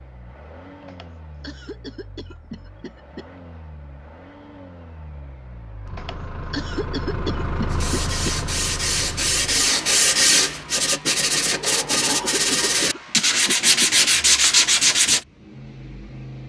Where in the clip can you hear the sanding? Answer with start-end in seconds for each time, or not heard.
7.7-15.2.